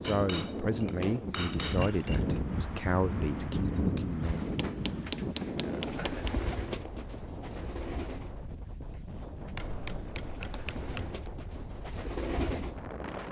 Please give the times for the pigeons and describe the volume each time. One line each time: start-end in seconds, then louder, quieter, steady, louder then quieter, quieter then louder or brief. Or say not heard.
4.2-13.2 quieter then louder.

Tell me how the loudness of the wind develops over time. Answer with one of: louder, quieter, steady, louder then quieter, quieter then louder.
quieter.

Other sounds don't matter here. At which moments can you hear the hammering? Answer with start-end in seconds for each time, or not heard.
0.0-2.4, 4.5-6.3, 9.6-11.2.